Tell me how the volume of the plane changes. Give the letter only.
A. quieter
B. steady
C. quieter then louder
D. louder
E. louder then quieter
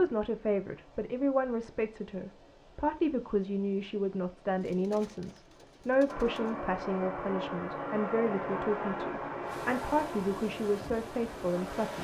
A.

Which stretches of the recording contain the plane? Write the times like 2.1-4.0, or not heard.
6.0-12.0.